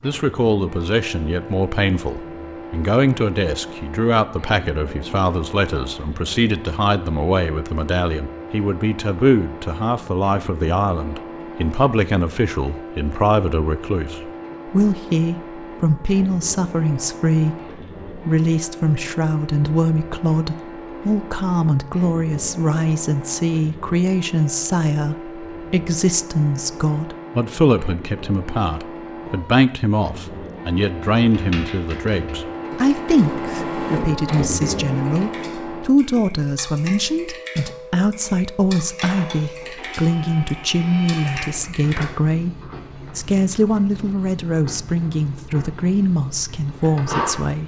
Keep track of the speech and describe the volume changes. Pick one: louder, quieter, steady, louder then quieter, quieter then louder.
steady.